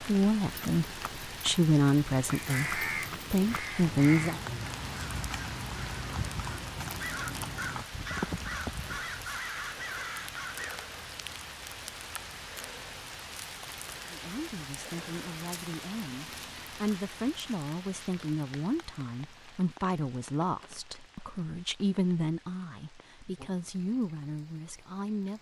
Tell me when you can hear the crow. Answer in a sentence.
You can hear the crow from 2.3 to 10.9 s.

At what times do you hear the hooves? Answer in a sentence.
You can hear the hooves from 0.5 to 9.0 s.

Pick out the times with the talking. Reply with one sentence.
You can hear the talking from 0.1 to 4.4 s and from 14.1 to 25.3 s.